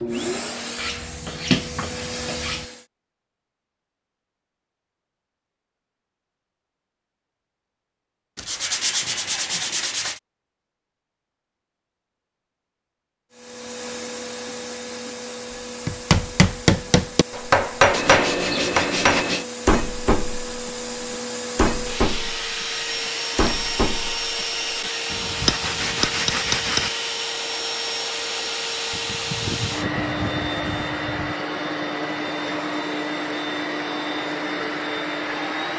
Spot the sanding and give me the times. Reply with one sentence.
The sanding can be heard from 0.8 to 2.6 s, from 8.3 to 10.2 s, from 17.9 to 19.4 s, from 25.4 to 26.9 s and from 28.9 to 31.4 s.